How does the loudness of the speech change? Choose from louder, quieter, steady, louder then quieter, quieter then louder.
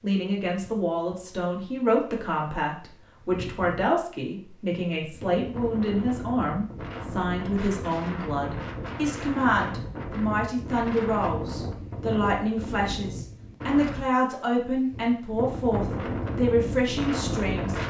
steady.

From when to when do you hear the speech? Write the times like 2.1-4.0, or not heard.
0.0-17.8.